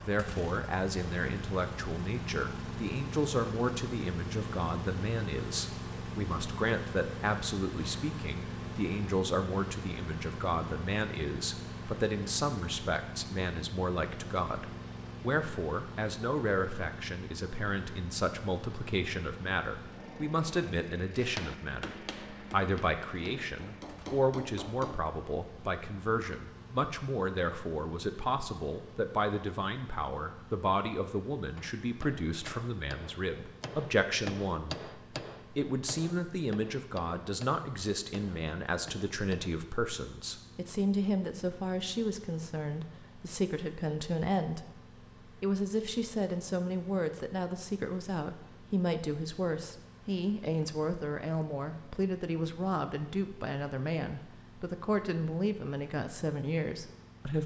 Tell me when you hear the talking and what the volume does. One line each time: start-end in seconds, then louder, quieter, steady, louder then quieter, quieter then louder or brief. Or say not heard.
0.1-34.8 steady
35.5-44.6 steady
45.4-57.4 steady.